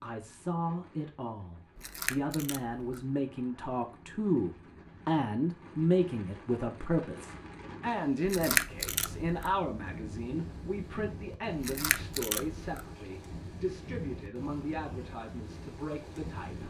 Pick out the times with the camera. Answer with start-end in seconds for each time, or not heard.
1.8-3.0, 8.2-9.6, 11.6-12.8.